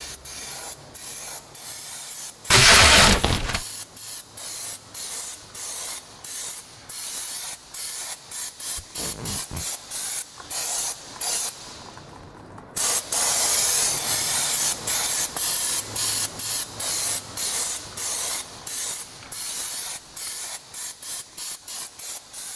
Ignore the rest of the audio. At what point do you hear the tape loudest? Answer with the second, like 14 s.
3 s.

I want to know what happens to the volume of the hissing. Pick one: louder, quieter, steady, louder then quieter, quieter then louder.
louder then quieter.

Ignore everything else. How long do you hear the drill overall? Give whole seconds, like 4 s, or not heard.
not heard.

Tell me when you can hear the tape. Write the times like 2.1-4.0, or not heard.
2.5-3.6, 8.8-9.7, 19.2-20.3.